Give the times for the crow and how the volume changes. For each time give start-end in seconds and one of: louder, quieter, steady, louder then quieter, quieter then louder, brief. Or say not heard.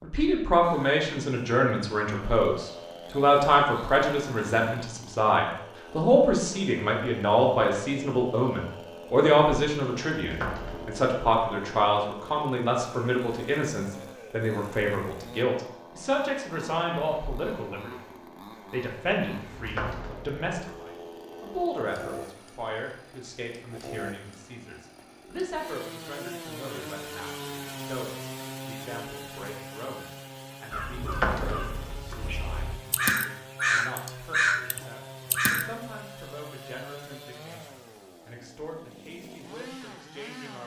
30.7-35.7 louder.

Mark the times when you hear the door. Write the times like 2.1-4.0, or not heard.
10.2-10.9, 19.5-20.8, 30.9-32.2.